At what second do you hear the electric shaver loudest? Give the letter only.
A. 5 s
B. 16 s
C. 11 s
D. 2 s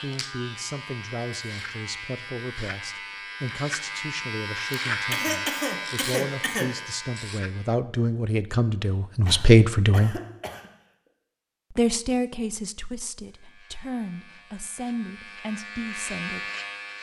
A.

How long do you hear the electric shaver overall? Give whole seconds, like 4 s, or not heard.
11 s.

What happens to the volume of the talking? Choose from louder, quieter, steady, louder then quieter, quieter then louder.
louder then quieter.